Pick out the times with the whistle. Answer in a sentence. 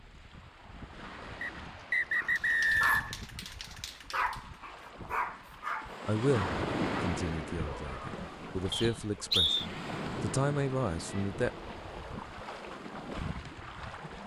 The whistle can be heard from 1.4 to 3.1 s and from 8.7 to 9.7 s.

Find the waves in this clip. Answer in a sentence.
The waves can be heard from 0.0 to 14.2 s.